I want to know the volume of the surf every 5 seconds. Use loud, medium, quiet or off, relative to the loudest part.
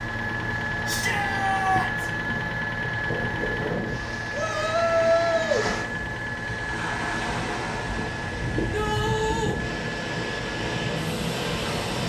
medium, loud, loud.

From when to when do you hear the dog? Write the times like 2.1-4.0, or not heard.
not heard.